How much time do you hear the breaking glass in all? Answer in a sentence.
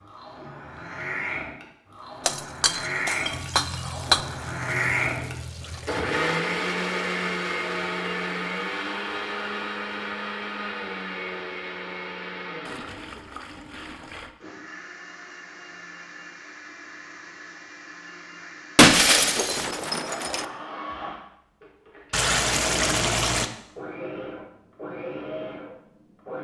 You can hear the breaking glass for 4 seconds altogether.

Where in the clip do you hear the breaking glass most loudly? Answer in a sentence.
The loudest moment of the breaking glass is at 19 seconds.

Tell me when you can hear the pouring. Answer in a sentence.
The pouring can be heard from 3.3 to 6.0 s, from 12.7 to 14.3 s and from 22.1 to 23.5 s.